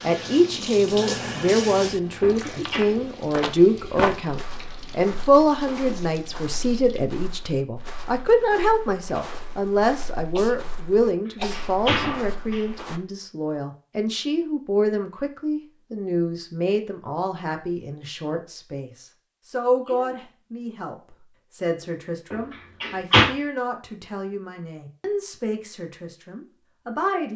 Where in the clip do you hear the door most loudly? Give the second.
23 s.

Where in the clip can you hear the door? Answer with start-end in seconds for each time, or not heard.
2.2-2.9, 11.0-12.7, 22.3-23.3.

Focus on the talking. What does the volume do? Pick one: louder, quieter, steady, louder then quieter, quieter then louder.
quieter.